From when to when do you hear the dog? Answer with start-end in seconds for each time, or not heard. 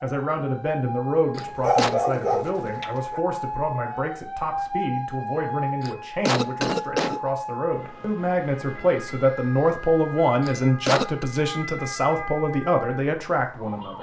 1.4-3.2.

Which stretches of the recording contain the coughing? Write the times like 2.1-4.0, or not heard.
1.4-1.9, 5.8-7.2, 10.4-11.2.